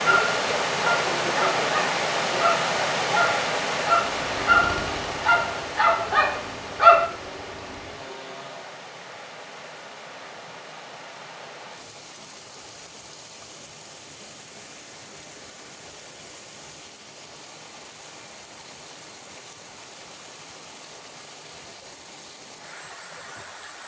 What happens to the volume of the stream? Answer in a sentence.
The volume of the stream goes down.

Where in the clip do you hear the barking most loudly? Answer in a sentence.
The volume of the barking peaks at 7 seconds.